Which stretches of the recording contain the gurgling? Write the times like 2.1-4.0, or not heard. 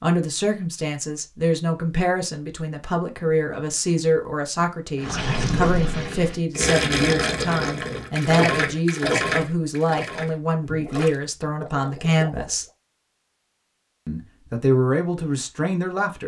5.0-12.7.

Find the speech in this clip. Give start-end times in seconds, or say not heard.
0.0-12.7, 14.1-16.2.